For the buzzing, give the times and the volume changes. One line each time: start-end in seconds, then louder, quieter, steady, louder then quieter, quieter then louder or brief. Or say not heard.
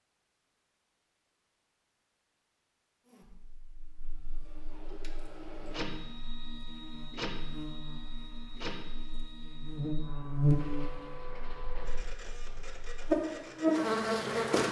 3.0-14.6 louder.